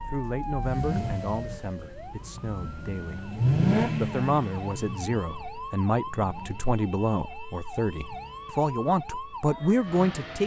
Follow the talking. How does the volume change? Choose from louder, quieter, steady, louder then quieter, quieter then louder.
louder.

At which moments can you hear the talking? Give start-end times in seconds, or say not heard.
0.1-10.4.